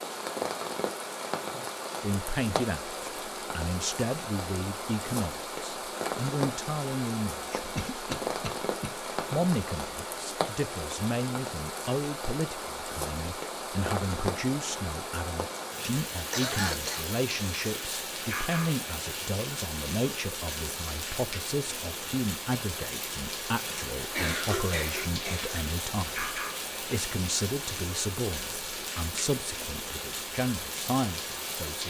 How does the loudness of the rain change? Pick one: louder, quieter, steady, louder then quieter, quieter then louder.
steady.